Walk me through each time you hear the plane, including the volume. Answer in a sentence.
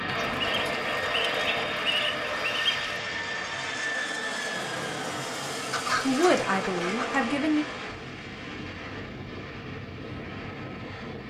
You can hear the plane from 0.0 to 11.2 s, getting quieter.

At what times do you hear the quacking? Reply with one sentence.
The quacking can be heard from 0.1 to 2.8 s and from 5.7 to 7.2 s.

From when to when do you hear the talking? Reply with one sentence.
The talking can be heard from 6.0 to 7.7 s.